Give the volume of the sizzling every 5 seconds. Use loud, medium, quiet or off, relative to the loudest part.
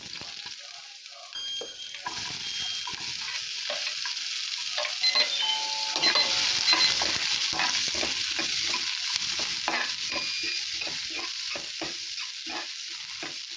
medium, loud, medium.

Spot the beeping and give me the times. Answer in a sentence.
The beeping can be heard from 1.3 to 3.0 s, from 5.0 to 7.2 s and from 10.2 to 10.6 s.